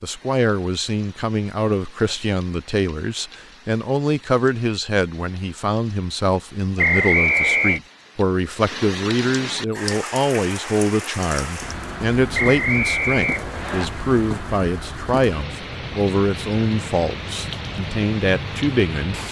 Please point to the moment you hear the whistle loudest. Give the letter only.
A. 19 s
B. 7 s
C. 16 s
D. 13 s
B.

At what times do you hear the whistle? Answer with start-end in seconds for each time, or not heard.
6.8-7.8, 12.3-13.8.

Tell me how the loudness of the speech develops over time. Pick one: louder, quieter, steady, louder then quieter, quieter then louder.
steady.